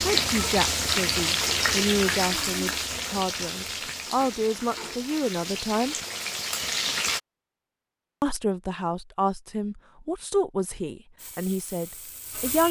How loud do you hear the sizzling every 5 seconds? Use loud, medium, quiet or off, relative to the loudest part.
loud, loud, quiet.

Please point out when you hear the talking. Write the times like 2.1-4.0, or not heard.
0.0-6.0, 8.2-12.6.